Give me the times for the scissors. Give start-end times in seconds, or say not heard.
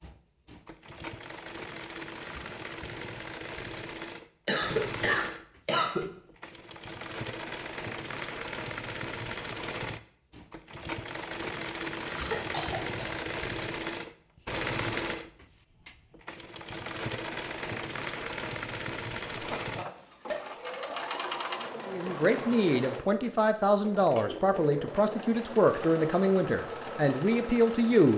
not heard.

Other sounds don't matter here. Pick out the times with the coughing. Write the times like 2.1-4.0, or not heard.
4.5-6.1, 12.2-13.2, 19.3-20.8.